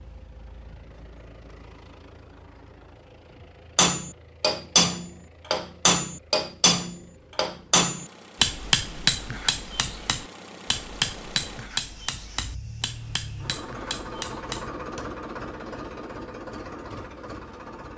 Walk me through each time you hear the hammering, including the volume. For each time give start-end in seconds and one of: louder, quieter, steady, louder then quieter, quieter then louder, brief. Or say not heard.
3.8-15.1 quieter.